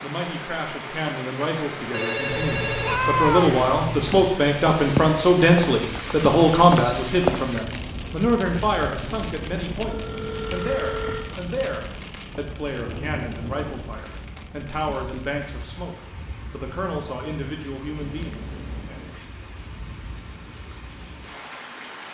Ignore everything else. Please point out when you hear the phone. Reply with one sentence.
You can hear the phone from 1.9 to 3.0 s, from 9.8 to 11.3 s and from 17.9 to 19.1 s.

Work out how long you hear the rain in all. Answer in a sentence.
You can hear the rain for 22 seconds altogether.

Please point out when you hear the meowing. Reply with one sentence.
You can hear the meowing from 2.4 to 4.3 s.